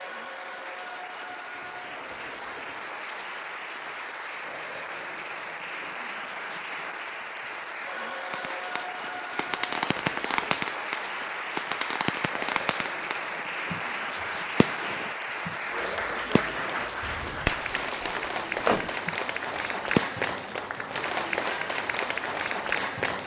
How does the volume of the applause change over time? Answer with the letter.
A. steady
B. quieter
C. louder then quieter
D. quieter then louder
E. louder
E.